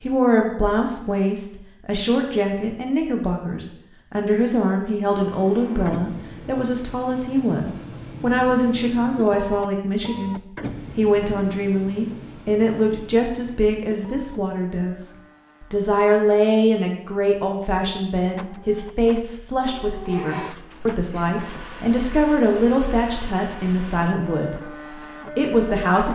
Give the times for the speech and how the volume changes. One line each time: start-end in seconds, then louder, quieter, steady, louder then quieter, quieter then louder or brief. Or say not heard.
0.0-24.8 steady
25.4-26.1 brief.